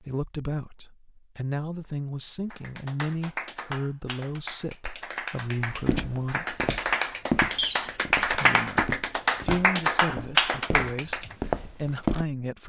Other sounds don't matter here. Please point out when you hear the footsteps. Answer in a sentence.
You can hear the footsteps from 5.7 to 12.2 s.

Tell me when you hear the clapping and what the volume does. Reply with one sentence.
The clapping can be heard from 2.5 to 11.3 s, getting louder.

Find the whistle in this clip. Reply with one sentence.
You can hear the whistle from 7.5 to 8.2 s.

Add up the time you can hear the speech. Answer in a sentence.
The speech can be heard for 11 seconds in total.